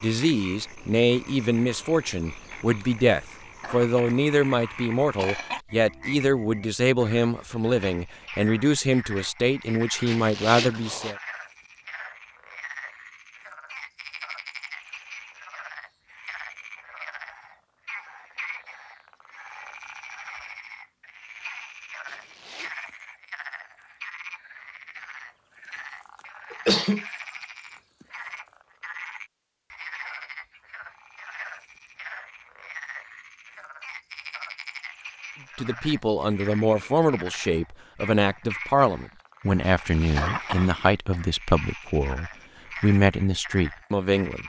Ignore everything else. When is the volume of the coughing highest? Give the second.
27 s.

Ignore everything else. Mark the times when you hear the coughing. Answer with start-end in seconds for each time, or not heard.
3.6-4.2, 5.2-5.6, 26.5-27.1, 40.1-41.2.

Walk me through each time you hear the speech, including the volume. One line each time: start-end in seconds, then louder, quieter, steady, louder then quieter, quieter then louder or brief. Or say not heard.
0.0-11.2 steady
35.5-44.4 steady.